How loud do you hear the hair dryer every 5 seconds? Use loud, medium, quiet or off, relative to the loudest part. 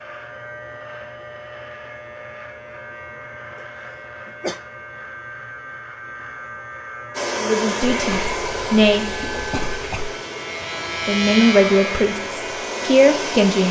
off, loud, loud.